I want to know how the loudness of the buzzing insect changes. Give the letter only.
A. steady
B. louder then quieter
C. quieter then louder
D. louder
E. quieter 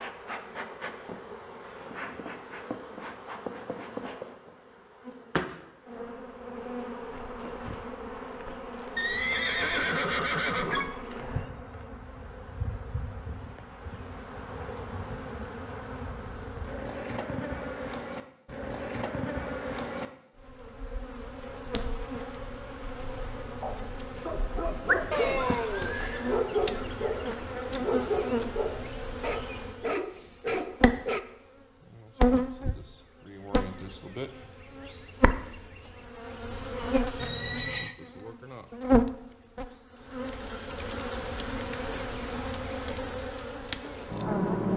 D.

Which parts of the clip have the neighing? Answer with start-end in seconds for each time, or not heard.
8.9-10.9, 25.1-26.4, 37.1-38.0.